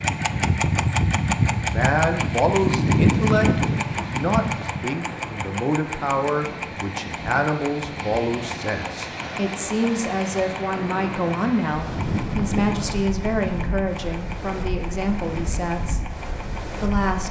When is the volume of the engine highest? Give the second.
3 s.